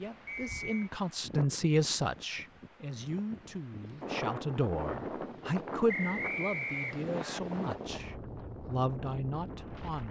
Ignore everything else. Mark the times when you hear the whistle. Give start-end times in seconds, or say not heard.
0.2-0.9, 5.8-7.4.